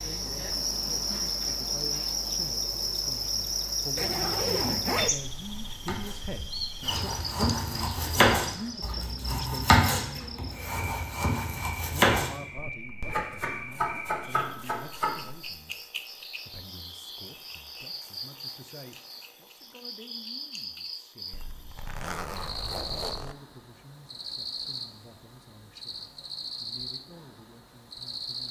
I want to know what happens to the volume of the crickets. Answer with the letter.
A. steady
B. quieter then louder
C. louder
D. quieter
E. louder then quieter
D.